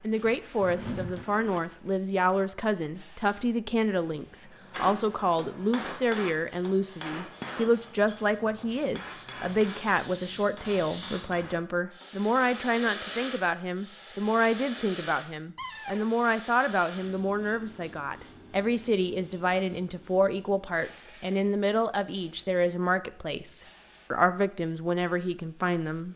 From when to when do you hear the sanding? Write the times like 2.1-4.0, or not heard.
not heard.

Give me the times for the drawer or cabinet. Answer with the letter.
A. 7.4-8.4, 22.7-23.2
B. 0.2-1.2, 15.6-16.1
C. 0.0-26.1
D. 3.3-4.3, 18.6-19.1
B.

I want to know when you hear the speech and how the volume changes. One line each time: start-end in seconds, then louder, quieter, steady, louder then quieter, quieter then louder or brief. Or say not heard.
0.0-26.1 steady.